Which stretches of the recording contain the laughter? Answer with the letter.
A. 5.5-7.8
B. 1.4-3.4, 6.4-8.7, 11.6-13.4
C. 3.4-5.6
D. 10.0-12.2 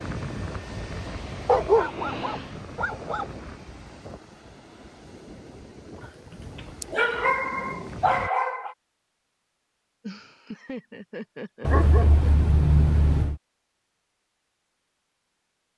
D.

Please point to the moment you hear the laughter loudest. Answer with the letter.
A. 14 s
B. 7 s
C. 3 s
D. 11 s
D.